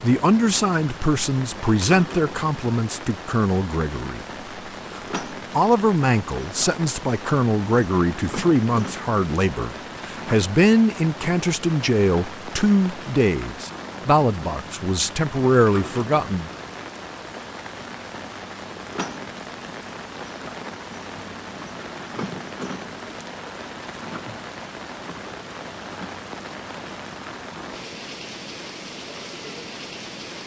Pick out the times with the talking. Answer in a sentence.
You can hear the talking from 0.0 to 4.2 s and from 4.9 to 16.5 s.